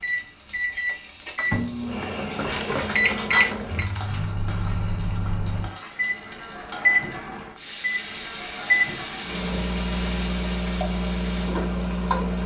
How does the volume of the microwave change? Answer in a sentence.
The volume of the microwave stays about the same.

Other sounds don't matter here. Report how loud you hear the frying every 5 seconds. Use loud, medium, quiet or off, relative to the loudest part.
medium, loud, loud.